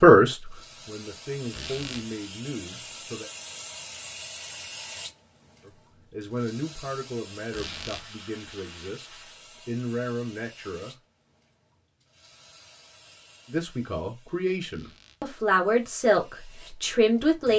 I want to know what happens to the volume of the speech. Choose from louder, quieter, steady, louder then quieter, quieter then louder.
quieter then louder.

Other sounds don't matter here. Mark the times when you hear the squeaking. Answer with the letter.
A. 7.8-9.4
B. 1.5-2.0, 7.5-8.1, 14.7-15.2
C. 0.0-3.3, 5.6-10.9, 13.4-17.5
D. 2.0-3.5
B.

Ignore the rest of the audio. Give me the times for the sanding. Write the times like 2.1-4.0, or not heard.
7.8-9.4.